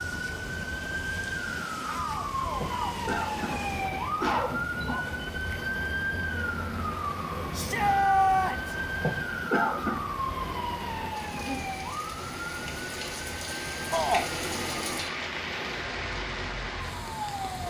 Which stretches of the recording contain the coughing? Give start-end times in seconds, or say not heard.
2.5-5.2, 8.9-10.0.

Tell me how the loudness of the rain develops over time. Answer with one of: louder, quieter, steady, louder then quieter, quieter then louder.
louder.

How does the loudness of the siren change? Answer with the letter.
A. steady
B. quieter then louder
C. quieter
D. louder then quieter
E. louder
C.